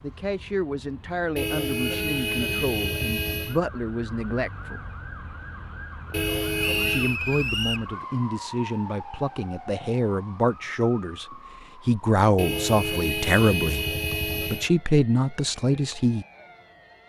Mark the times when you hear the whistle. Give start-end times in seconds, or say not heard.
6.6-7.9.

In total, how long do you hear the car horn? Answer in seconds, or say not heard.
6 s.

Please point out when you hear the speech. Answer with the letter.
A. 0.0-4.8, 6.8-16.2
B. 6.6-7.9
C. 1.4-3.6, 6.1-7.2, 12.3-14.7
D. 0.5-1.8
A.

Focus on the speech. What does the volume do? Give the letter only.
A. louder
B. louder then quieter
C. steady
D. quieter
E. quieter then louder
A.